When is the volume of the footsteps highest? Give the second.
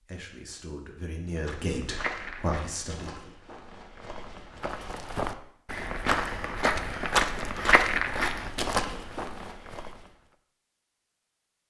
8 s.